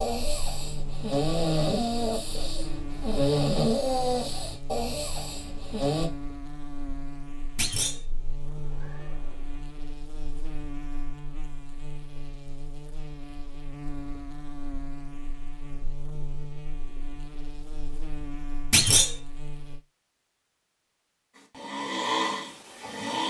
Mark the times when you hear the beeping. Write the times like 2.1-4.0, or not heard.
not heard.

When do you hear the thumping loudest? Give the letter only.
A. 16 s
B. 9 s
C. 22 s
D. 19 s
D.